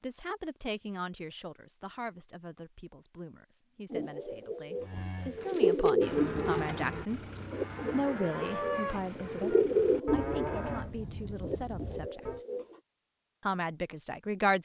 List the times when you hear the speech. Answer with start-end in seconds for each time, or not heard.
0.0-7.2, 7.9-12.4, 13.4-14.5.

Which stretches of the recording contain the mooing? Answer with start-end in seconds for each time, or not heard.
4.8-12.4.